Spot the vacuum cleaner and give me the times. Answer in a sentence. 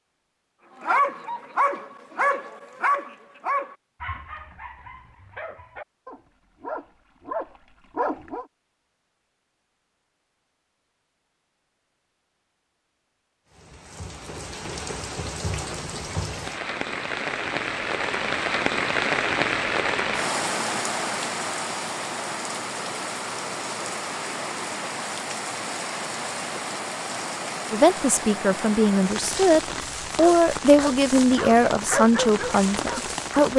You can't hear the vacuum cleaner here.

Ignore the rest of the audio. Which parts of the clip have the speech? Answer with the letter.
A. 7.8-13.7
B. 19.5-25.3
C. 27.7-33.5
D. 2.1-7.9
C.